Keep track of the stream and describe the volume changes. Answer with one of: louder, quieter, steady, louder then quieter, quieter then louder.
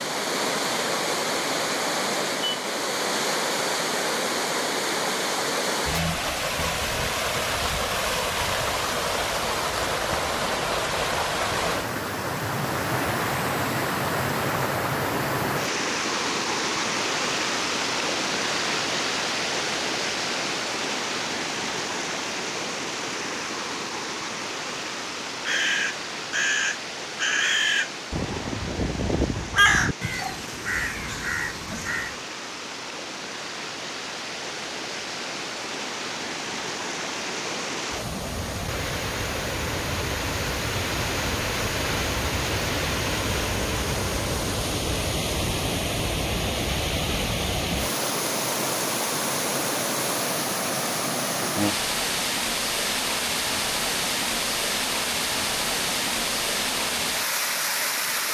quieter then louder.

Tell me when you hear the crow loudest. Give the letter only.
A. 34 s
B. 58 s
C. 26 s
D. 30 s
D.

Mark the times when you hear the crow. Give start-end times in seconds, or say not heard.
25.4-32.1.